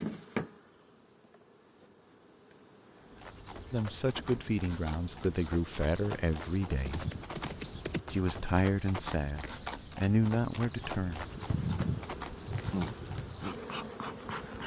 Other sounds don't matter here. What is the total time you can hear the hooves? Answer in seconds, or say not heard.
11 s.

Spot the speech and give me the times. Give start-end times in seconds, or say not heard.
3.7-7.0, 8.1-11.2.